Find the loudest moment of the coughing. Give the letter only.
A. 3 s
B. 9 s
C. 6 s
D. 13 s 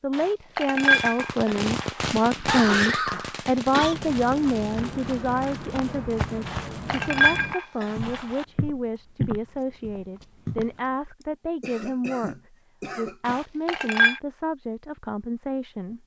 A.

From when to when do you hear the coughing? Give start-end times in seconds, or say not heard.
2.2-4.0, 11.6-13.4.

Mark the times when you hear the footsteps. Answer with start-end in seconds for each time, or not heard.
3.8-10.8.